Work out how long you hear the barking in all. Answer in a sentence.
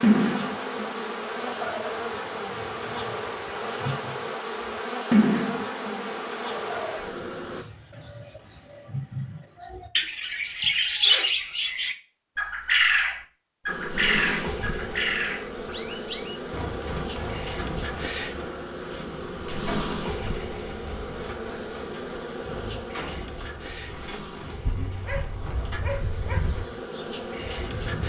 You can hear the barking for 2 seconds altogether.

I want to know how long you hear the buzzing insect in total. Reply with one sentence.
The buzzing insect can be heard for 22 seconds in total.